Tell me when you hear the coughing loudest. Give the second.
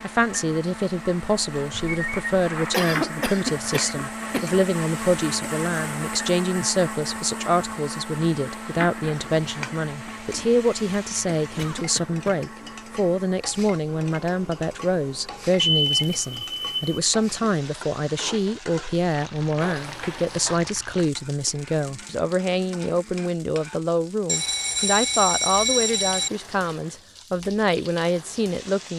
3 s.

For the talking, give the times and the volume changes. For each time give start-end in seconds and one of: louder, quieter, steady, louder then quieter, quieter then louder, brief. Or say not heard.
0.0-28.9 steady.